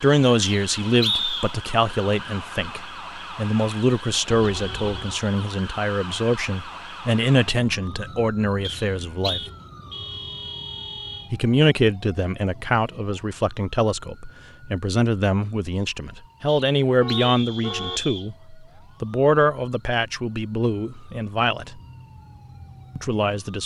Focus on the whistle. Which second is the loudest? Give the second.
1 s.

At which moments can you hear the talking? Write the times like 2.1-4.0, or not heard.
0.0-9.4, 11.3-21.8, 22.9-23.6.